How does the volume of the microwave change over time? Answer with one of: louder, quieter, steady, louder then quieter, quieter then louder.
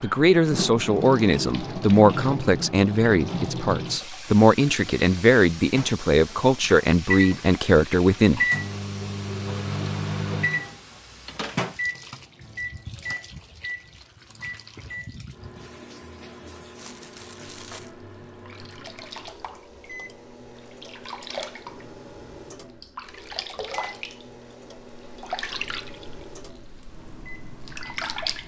quieter.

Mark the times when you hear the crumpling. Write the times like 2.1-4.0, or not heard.
16.8-17.9.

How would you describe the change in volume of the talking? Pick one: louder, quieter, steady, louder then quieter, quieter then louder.
steady.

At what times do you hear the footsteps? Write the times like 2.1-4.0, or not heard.
not heard.